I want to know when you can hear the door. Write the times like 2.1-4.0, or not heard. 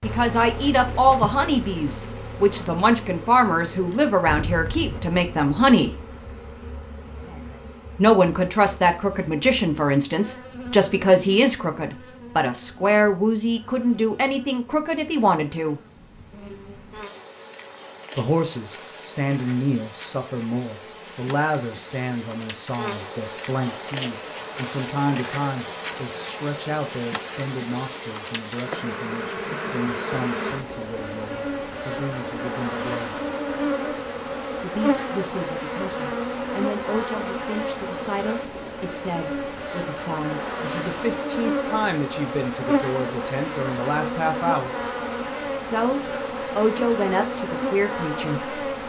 not heard.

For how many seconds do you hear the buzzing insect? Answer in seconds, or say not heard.
49 s.